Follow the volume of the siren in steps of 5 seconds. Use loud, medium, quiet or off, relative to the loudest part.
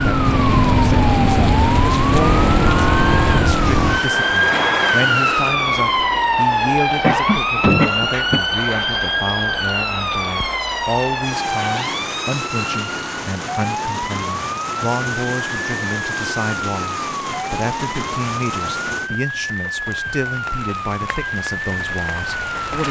loud, loud, medium, medium, medium.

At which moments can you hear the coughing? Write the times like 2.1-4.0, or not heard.
7.0-8.4.